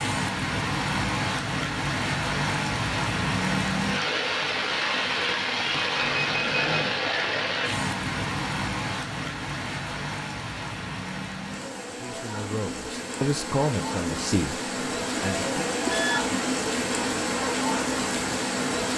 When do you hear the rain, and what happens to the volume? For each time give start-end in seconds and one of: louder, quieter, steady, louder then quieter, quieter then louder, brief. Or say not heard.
0.0-18.9 quieter then louder.